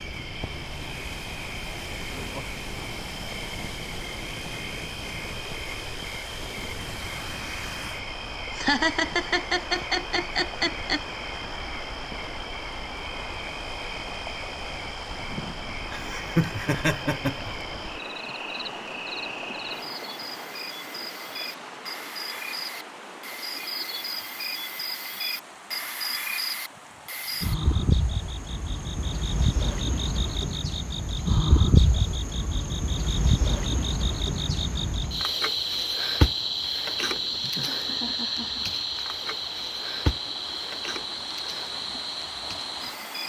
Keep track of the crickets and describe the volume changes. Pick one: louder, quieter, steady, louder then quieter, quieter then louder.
louder.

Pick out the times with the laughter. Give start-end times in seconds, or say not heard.
8.6-11.0, 15.9-17.6, 37.0-38.7.